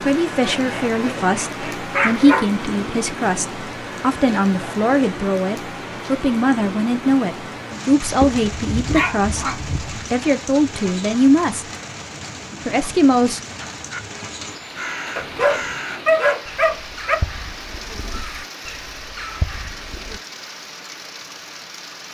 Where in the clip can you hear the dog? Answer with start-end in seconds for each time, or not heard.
0.5-2.5, 8.2-10.1, 15.2-17.1.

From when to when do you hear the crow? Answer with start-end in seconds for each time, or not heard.
13.8-20.2.